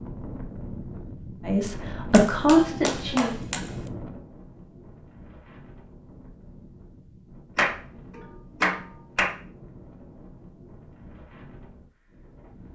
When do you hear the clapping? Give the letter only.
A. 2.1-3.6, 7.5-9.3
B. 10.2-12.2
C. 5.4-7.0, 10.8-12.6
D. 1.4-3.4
A.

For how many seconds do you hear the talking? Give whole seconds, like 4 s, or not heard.
2 s.